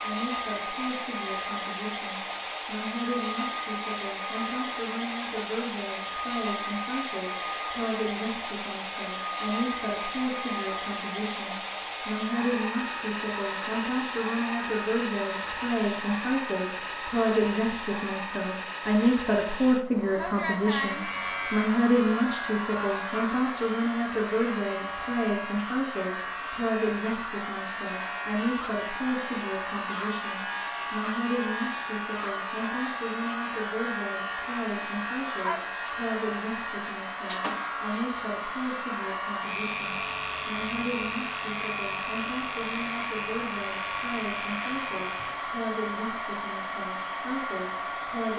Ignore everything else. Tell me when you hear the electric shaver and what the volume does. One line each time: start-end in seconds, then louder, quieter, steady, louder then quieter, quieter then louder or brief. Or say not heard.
20.8-45.5 steady.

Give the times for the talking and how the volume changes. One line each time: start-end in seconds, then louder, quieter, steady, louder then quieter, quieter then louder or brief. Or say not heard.
0.0-48.3 louder then quieter.